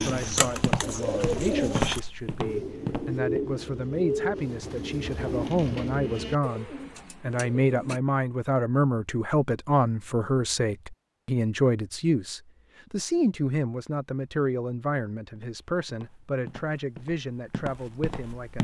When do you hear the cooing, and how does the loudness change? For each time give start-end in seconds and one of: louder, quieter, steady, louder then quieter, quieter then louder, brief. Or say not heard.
0.0-8.0 quieter.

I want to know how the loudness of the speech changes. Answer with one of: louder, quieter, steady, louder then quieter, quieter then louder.
louder then quieter.